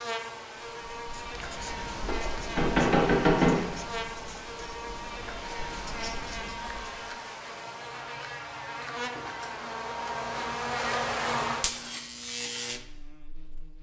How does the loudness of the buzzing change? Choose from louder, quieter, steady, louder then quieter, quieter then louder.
louder.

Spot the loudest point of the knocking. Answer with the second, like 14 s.
3 s.